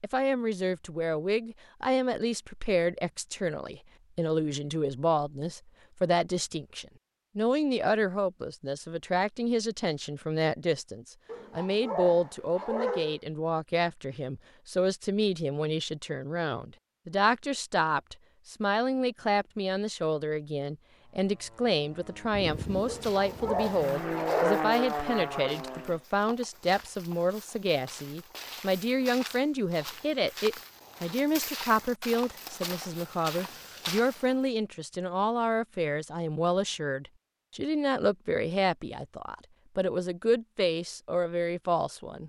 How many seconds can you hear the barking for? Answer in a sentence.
You can hear the barking for 4 seconds altogether.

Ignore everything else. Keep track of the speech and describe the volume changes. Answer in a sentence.
The volume of the speech stays about the same.